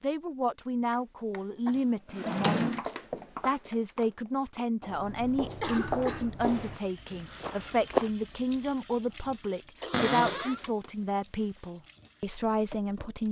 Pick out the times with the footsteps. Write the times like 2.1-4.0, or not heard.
2.7-8.1.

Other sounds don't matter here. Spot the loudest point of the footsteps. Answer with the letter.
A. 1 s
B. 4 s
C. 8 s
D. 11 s
C.